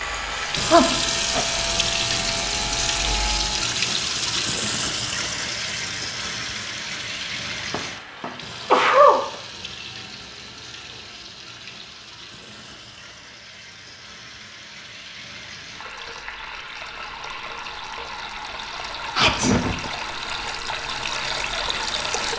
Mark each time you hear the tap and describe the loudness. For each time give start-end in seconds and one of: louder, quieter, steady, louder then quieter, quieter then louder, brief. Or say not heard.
0.0-22.3 quieter then louder.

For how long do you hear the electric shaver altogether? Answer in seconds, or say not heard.
4 s.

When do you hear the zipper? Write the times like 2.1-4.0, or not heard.
not heard.